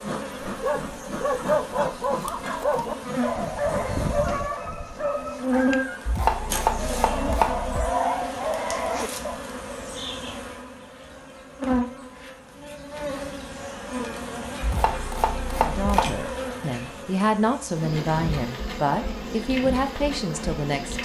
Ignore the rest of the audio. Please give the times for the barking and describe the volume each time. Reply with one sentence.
The barking can be heard from 0.5 to 9.4 s, getting quieter then louder.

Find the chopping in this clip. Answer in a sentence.
You can hear the chopping from 6.0 to 7.9 s and from 14.6 to 16.2 s.